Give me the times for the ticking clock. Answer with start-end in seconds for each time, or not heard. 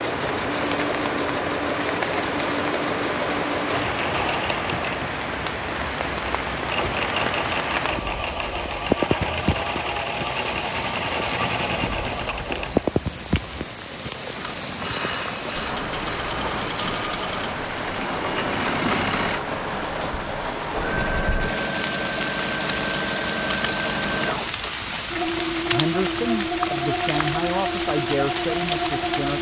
not heard.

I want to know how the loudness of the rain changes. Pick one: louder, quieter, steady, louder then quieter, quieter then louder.
steady.